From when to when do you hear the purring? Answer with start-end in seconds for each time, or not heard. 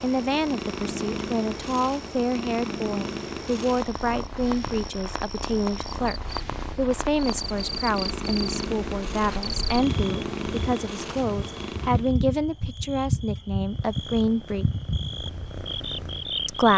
0.0-12.2, 13.7-16.7.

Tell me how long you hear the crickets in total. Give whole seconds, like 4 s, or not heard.
17 s.